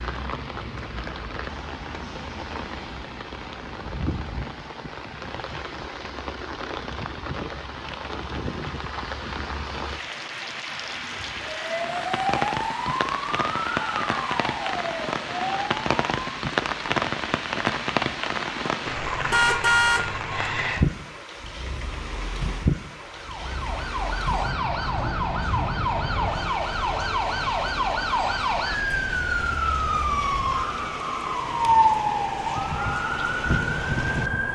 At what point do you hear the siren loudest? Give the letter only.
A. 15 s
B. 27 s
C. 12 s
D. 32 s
D.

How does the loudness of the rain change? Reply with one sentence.
The volume of the rain goes up, then down.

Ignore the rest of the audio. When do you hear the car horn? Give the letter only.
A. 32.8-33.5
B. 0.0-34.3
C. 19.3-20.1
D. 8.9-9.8
C.